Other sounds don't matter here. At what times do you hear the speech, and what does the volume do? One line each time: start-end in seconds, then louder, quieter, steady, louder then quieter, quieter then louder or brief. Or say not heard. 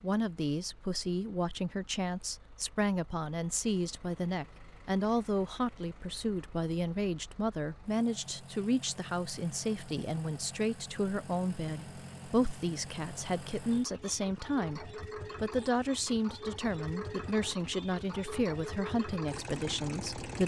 0.0-20.4 steady.